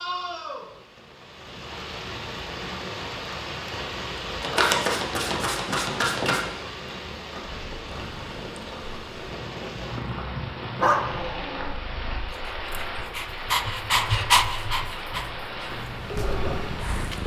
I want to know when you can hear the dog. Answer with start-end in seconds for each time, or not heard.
10.8-17.2.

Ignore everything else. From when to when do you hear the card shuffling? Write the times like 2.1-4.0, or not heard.
4.4-6.5.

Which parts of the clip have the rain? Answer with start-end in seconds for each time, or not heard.
0.0-17.2.